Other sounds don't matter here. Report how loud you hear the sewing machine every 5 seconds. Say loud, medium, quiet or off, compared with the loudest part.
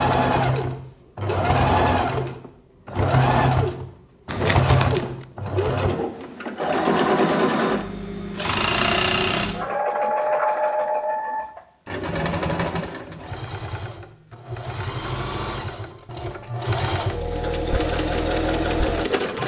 loud, loud, medium, medium.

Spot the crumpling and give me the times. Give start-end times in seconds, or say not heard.
4.2-5.2.